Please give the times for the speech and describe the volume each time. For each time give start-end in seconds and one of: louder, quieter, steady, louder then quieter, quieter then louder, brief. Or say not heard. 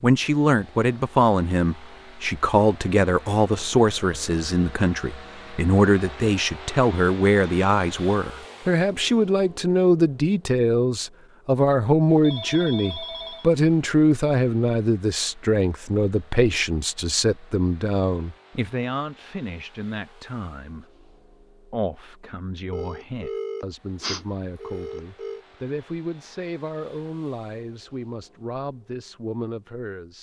0.0-30.1 quieter.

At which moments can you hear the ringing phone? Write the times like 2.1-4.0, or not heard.
12.2-13.5, 22.7-25.4.